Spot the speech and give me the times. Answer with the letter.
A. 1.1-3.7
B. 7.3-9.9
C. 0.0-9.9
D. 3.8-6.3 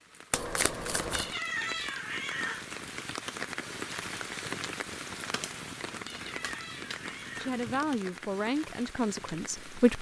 B.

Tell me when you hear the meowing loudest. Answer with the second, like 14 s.
2 s.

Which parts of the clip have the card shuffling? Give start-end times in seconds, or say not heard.
0.3-1.4, 5.3-8.0.